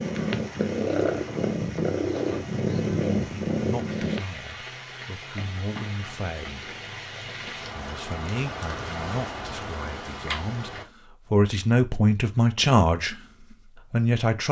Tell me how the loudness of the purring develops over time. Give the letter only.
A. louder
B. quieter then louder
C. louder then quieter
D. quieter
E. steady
E.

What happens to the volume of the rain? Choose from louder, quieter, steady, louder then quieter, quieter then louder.
louder.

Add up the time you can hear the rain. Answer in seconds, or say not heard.
11 s.